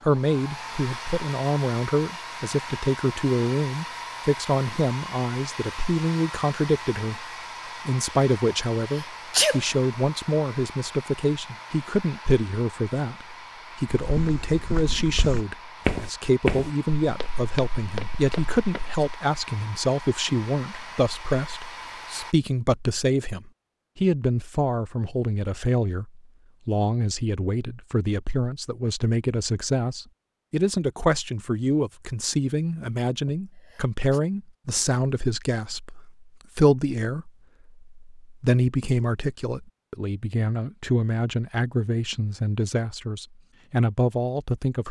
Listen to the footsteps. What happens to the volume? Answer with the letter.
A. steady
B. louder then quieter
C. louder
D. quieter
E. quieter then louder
B.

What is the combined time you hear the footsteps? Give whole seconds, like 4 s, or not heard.
5 s.